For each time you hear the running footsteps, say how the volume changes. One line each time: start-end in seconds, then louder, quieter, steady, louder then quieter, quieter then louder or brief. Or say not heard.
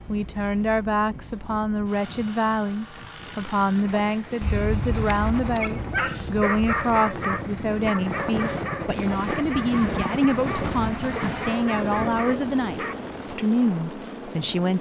not heard.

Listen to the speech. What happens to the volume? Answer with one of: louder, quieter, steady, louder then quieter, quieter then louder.
steady.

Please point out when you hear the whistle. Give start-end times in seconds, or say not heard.
not heard.